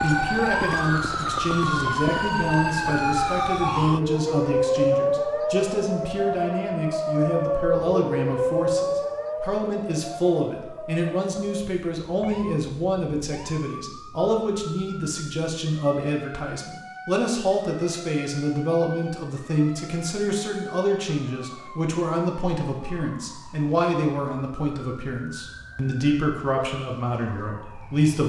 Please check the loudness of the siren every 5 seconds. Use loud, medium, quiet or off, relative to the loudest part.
loud, loud, quiet, quiet, quiet, quiet.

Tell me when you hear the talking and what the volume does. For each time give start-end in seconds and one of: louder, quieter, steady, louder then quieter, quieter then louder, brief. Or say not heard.
0.0-28.2 steady.